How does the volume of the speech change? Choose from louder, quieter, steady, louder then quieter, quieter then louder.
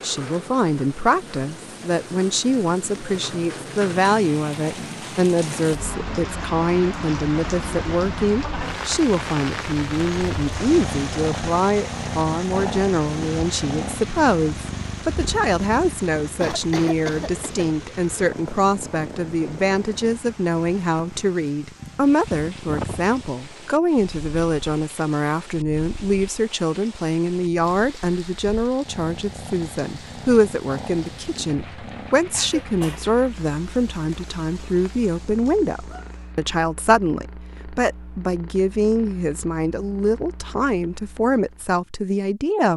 steady.